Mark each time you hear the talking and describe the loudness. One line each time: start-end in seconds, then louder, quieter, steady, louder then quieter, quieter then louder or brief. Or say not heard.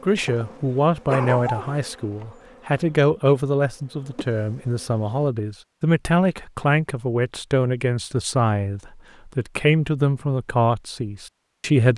0.0-11.9 steady.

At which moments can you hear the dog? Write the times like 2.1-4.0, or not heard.
1.1-1.8.